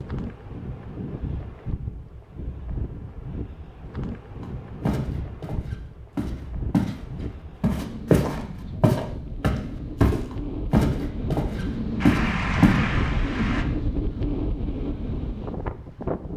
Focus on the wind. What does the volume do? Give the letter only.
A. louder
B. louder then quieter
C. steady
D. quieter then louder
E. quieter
A.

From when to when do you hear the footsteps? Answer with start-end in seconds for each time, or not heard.
4.8-7.0, 7.6-12.8.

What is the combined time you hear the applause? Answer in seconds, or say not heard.
2 s.